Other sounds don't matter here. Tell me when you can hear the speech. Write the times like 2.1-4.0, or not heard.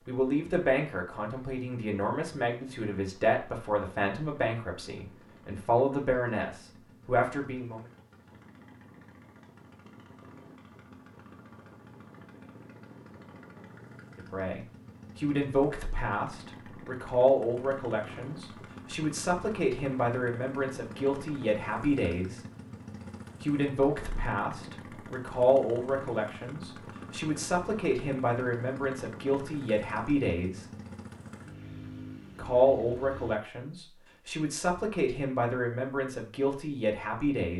0.1-7.8, 14.2-22.4, 23.4-30.6, 32.4-37.5.